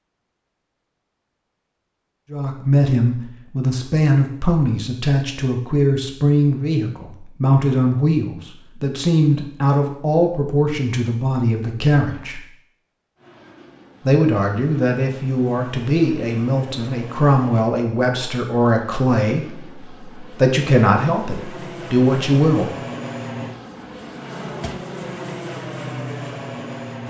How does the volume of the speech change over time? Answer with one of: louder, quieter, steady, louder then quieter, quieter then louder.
steady.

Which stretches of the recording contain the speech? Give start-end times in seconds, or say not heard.
2.3-12.4, 14.1-22.7.